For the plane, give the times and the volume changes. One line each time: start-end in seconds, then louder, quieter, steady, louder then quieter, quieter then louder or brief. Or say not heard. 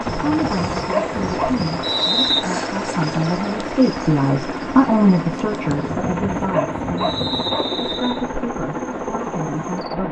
0.0-10.0 steady.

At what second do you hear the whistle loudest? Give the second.
2 s.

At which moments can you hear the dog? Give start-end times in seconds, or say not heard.
0.1-1.9, 5.7-7.7.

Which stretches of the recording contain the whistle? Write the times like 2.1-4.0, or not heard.
1.8-2.5, 7.0-8.2.